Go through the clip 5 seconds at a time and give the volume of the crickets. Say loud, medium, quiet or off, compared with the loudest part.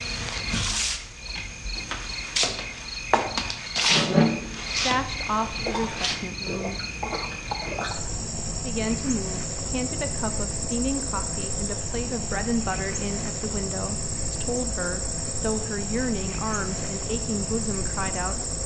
loud, medium, medium, medium.